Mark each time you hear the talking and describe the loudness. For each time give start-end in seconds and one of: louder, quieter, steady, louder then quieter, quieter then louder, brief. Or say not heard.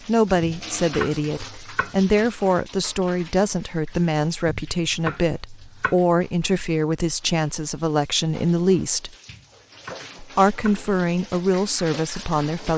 0.1-9.1 steady
10.2-12.7 brief.